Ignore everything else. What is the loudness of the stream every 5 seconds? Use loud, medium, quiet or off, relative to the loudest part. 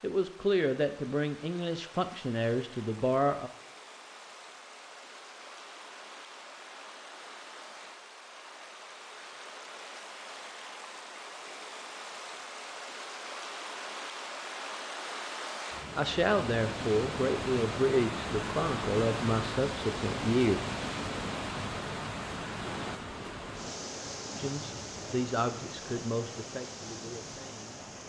quiet, medium, medium, loud, loud, medium.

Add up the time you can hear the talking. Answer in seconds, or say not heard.
12 s.